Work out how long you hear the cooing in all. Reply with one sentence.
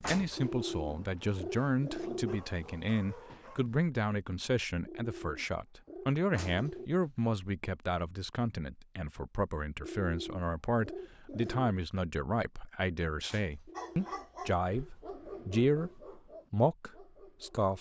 The cooing can be heard for 8 seconds in total.